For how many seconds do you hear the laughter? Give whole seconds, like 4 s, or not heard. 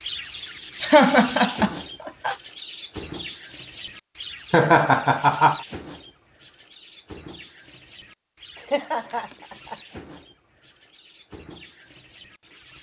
4 s.